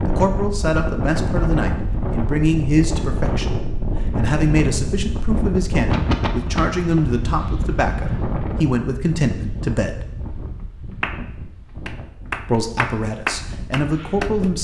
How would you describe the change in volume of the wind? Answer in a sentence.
The loudness of the wind goes down.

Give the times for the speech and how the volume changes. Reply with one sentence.
You can hear the speech from 0.1 to 10.1 s, at a steady volume; and briefly from 12.4 to 14.5 s.